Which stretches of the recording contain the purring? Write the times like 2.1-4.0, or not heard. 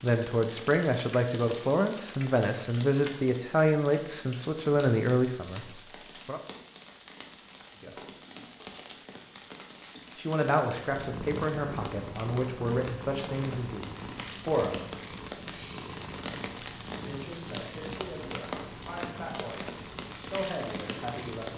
10.9-21.5.